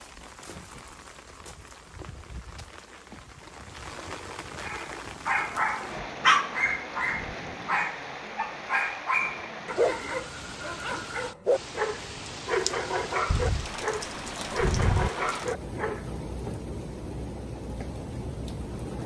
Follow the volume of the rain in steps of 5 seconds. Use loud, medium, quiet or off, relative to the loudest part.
medium, loud, loud, loud.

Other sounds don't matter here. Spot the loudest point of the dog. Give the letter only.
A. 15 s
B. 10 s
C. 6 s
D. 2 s
C.